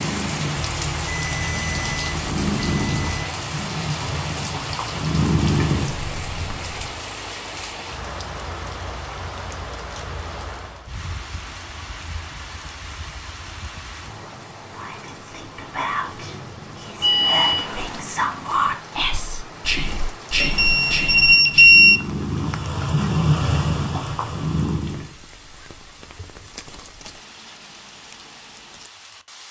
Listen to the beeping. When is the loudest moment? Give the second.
22 s.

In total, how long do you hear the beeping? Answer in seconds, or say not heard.
5 s.